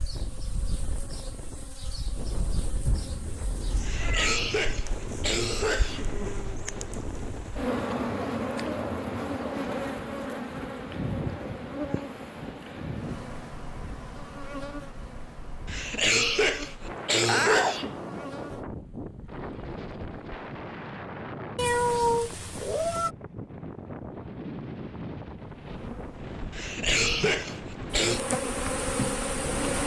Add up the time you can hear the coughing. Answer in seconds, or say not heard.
6 s.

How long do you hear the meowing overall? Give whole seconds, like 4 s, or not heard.
4 s.